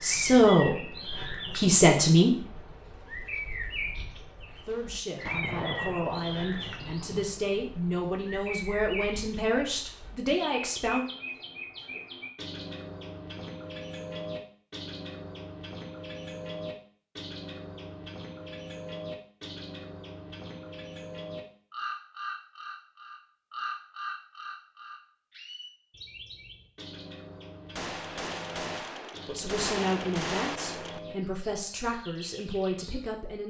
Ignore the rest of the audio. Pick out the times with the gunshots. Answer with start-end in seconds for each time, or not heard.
5.2-7.2, 27.8-31.0.